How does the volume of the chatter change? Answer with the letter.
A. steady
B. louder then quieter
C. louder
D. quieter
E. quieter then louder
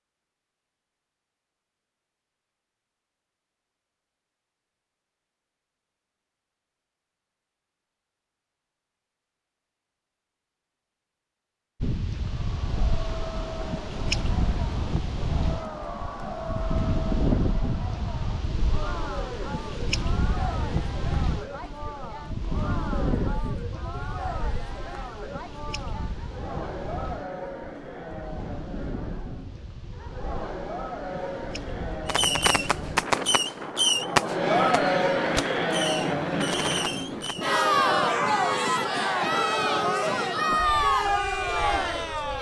C.